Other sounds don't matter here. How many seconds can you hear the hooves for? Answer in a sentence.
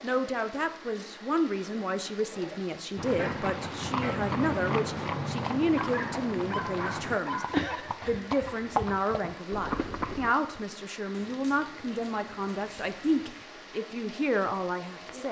You can hear the hooves for 7 seconds altogether.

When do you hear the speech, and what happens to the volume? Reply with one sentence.
You can hear the speech from 0.0 to 15.2 s, at a steady volume.